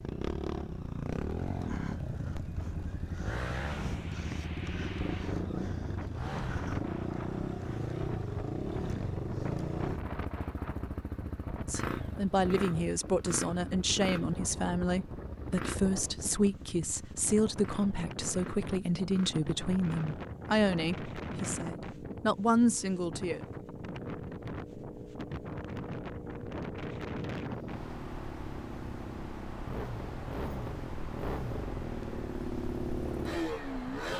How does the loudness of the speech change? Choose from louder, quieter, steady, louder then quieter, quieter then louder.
steady.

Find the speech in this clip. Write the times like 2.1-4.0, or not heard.
11.7-23.4.